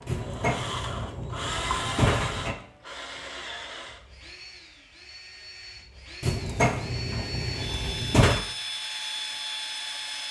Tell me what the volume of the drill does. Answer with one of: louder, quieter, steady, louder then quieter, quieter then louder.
quieter then louder.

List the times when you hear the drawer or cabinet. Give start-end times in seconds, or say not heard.
0.1-2.5, 6.2-8.4.